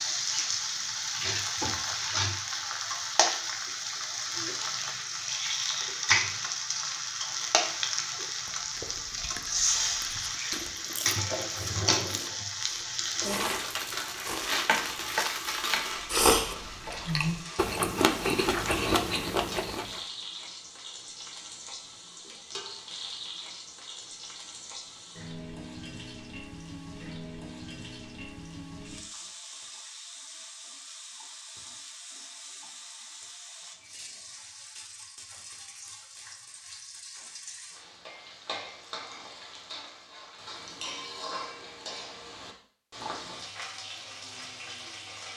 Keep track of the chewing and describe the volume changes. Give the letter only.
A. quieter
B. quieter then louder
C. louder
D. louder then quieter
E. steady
C.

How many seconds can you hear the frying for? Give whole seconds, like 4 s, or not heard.
45 s.